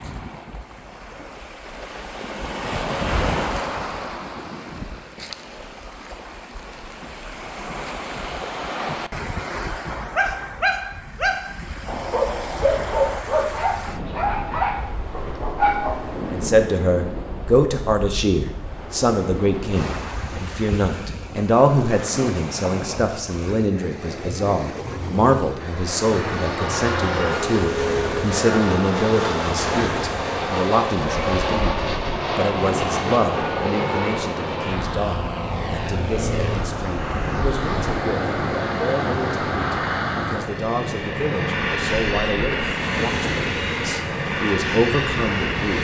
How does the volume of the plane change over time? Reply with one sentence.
The loudness of the plane stays about the same.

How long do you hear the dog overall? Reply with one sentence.
The dog can be heard for 6 seconds in total.